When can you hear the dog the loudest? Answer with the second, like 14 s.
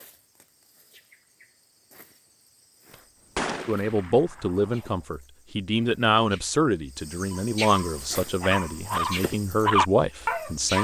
10 s.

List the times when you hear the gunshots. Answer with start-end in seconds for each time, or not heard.
2.9-5.0.